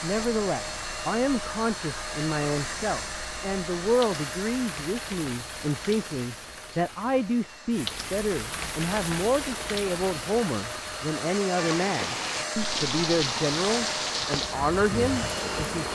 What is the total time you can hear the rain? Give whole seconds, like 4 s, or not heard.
16 s.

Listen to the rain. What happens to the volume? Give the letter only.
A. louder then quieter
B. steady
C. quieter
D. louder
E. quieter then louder
D.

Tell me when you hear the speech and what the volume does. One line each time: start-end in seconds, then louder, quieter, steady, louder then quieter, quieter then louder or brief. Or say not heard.
0.0-15.9 steady.